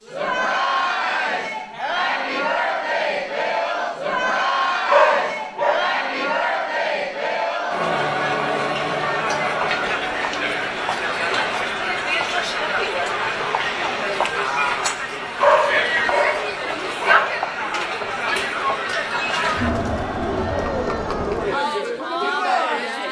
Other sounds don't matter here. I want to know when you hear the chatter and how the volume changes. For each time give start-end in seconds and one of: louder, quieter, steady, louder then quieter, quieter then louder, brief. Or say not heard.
0.1-23.0 steady.